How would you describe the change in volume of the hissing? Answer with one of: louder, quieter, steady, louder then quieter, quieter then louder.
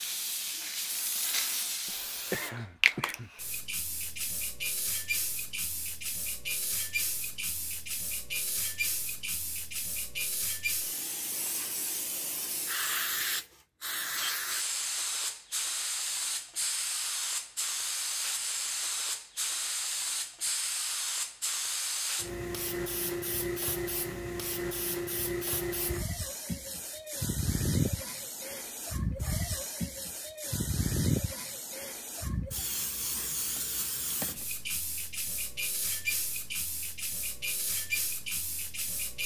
steady.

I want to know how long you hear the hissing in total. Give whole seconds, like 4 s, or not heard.
39 s.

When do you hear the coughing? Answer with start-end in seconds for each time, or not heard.
1.9-3.3.